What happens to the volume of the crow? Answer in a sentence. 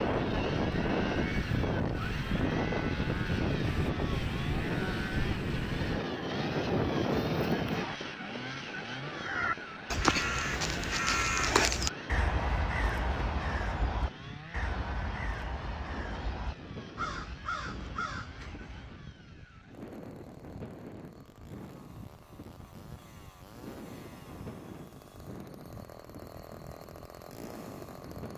The loudness of the crow goes down.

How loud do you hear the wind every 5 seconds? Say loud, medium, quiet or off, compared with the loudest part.
loud, loud, quiet, quiet, quiet, quiet.